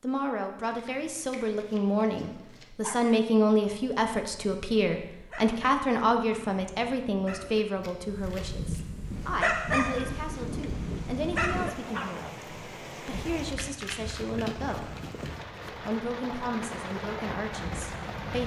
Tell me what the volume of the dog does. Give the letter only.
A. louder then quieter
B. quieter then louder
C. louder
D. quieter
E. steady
C.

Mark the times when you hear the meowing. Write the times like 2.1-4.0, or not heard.
13.1-13.8.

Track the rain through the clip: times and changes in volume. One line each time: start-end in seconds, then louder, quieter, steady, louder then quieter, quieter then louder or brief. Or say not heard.
8.9-18.4 louder.